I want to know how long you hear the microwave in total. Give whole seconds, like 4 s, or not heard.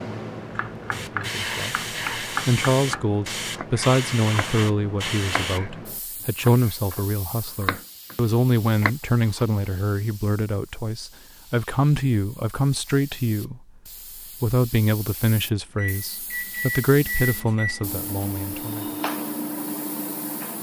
5 s.